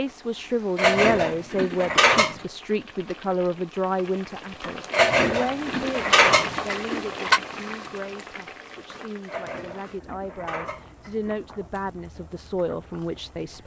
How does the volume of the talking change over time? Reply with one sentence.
The volume of the talking goes down, then up.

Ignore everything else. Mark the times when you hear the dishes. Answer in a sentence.
You can hear the dishes from 0.8 to 2.4 s, from 4.9 to 7.4 s and from 9.2 to 11.3 s.